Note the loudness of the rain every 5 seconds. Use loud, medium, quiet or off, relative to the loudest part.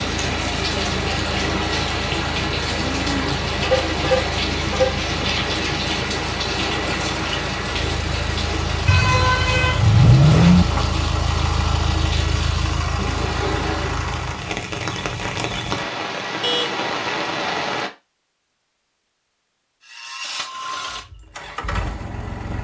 loud, loud, medium, loud, off.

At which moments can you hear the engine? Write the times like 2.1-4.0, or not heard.
0.0-14.6, 19.8-22.5.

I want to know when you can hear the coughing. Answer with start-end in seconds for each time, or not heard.
not heard.